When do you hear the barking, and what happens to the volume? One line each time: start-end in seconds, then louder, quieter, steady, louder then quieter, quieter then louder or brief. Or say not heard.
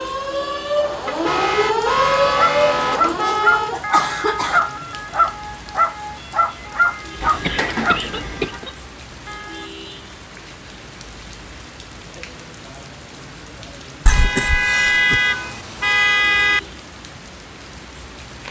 2.4-8.0 steady.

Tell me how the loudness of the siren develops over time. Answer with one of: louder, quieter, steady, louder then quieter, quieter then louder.
quieter.